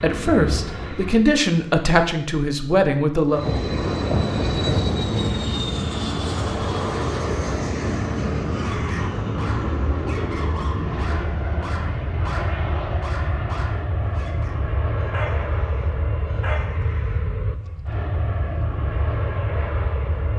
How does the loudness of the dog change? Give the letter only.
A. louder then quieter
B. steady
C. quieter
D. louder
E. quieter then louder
B.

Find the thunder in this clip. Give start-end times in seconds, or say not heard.
3.5-5.5.